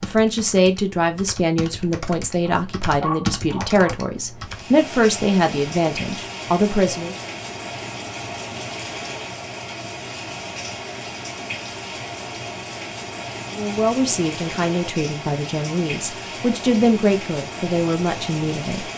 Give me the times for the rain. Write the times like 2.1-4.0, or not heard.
4.4-18.9.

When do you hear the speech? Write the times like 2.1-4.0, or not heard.
0.0-7.2, 13.5-18.9.